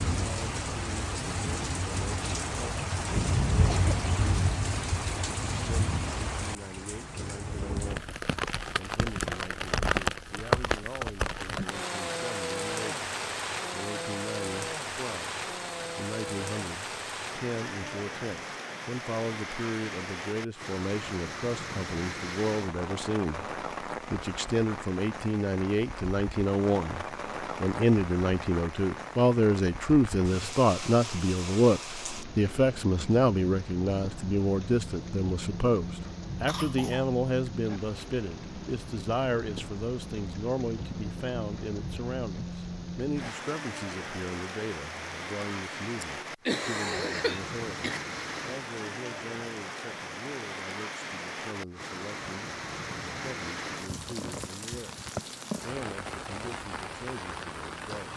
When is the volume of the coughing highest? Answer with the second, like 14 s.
47 s.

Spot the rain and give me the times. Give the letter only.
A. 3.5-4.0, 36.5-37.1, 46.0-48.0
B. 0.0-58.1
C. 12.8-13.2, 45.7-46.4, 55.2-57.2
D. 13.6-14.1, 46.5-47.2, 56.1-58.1
B.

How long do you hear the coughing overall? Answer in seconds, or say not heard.
3 s.